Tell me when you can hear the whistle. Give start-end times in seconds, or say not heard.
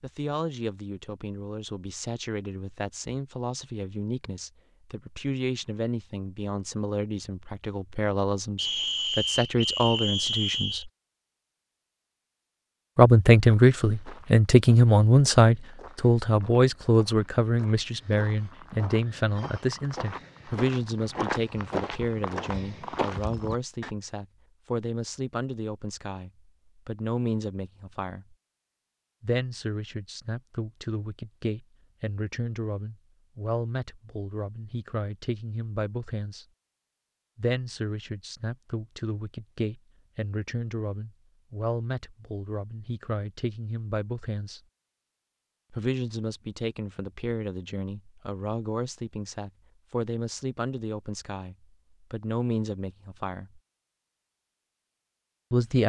8.6-10.8.